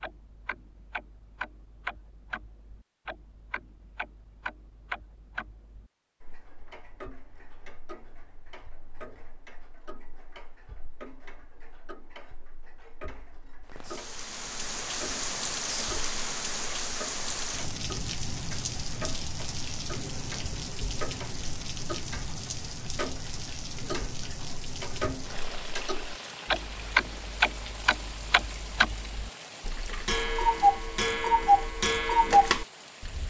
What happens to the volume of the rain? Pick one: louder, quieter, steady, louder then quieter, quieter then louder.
quieter.